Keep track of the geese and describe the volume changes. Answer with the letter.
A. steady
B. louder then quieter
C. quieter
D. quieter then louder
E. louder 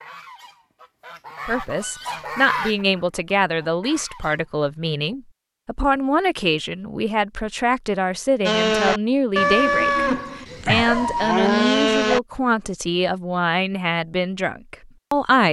B.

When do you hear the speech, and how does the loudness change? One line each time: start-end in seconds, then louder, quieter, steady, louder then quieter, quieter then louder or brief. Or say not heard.
1.4-15.4 steady.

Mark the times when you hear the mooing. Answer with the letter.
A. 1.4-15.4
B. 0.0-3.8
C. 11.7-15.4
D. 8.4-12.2
D.